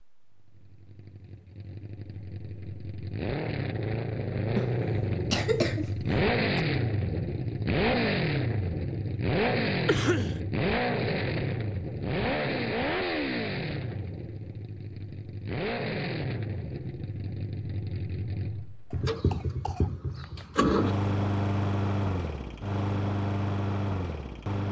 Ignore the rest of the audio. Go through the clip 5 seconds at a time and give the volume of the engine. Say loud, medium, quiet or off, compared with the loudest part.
medium, loud, loud, medium, loud.